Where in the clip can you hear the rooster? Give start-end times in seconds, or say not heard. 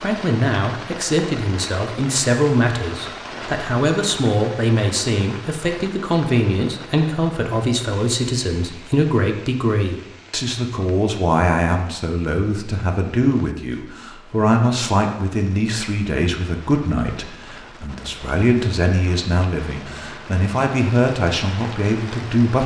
not heard.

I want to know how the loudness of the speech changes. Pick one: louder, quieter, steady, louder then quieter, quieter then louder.
steady.